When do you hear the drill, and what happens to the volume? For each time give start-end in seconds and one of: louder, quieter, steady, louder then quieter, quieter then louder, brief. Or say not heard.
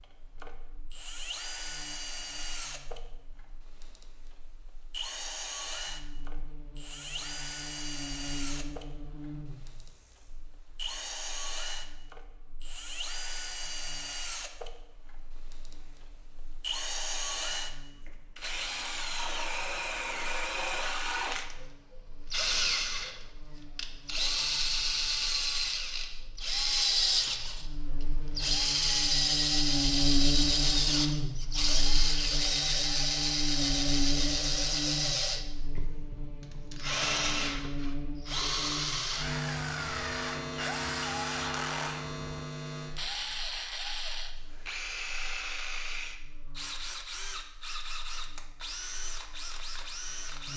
0.0-50.5 louder then quieter.